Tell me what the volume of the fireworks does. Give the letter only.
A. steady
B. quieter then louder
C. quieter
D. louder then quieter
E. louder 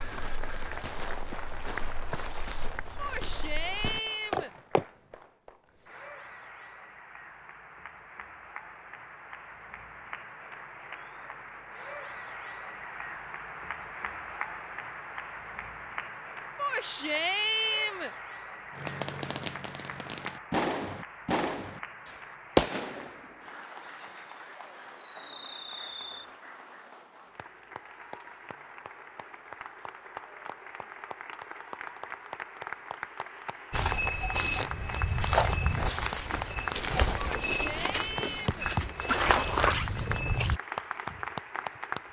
D.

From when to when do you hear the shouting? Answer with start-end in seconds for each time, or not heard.
3.0-4.5, 16.6-18.1, 37.2-38.7.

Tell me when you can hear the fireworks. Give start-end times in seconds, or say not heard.
18.8-26.2.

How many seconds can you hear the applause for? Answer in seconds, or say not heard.
42 s.